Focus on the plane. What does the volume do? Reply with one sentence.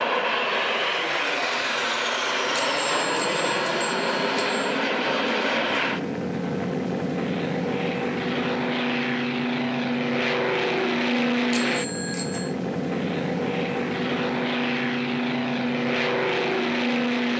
The loudness of the plane stays about the same.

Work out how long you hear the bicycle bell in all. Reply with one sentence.
The bicycle bell can be heard for 3 seconds in total.